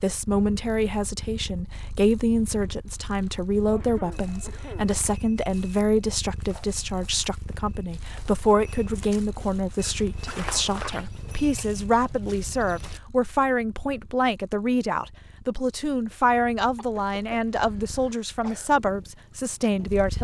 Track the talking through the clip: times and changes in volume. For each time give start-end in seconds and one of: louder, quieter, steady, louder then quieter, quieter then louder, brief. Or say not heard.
0.0-20.2 steady.